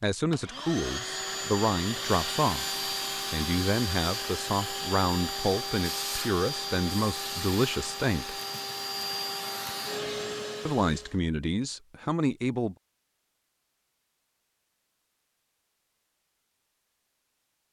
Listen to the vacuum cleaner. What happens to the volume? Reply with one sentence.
The loudness of the vacuum cleaner stays about the same.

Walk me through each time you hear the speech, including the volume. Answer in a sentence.
You can hear the speech briefly from 0.0 to 2.6 s; from 3.3 to 8.3 s, at a steady volume; and briefly from 10.7 to 12.8 s.